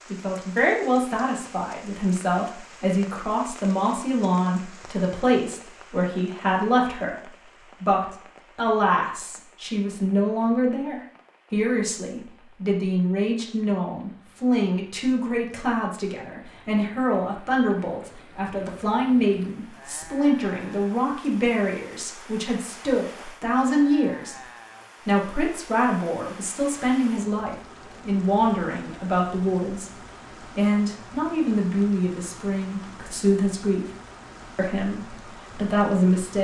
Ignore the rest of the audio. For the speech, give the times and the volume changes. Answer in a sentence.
The speech can be heard from 0.1 to 24.4 s, at a steady volume; from 25.0 to 33.9 s, at a steady volume; and briefly from 34.5 to 36.3 s.